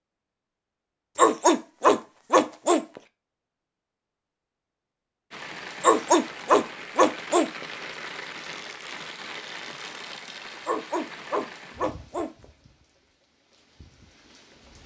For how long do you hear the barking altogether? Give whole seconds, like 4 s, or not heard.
5 s.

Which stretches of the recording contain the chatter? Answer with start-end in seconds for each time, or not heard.
not heard.